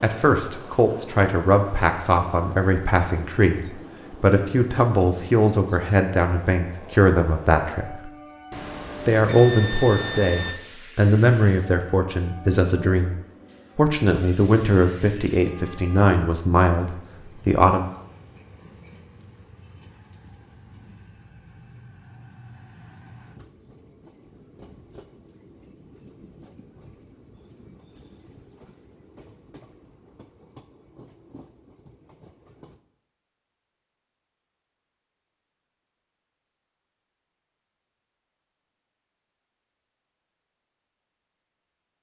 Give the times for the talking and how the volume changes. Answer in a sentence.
You can hear the talking from 0.0 to 8.1 s, at a steady volume; and from 9.1 to 17.9 s, at a steady volume.